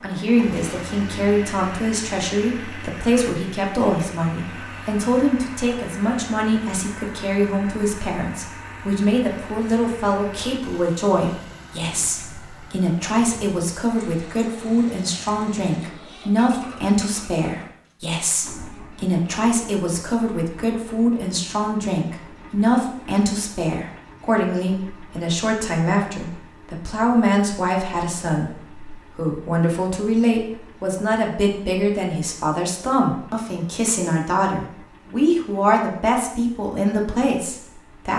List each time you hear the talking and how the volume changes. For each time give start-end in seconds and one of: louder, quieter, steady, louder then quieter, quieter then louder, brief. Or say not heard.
0.0-38.1 steady.